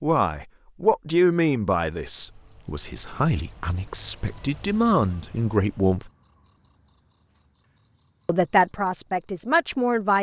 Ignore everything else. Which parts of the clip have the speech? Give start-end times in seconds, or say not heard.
0.0-6.1, 8.2-10.1.